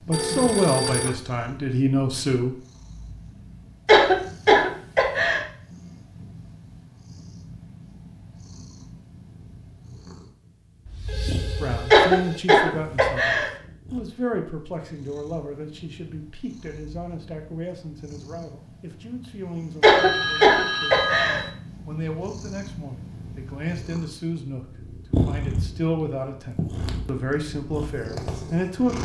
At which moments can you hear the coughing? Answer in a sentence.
The coughing can be heard from 3.9 to 5.4 s, from 11.9 to 13.5 s and from 19.8 to 21.4 s.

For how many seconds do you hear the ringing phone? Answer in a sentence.
The ringing phone can be heard for 4 seconds in total.